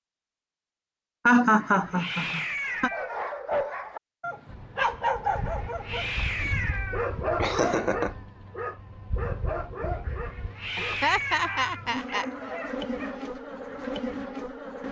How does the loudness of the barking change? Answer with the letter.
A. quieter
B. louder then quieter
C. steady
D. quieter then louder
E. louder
A.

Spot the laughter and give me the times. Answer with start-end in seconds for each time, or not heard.
1.2-2.9, 7.4-8.1, 10.8-12.2.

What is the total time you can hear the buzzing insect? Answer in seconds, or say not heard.
10 s.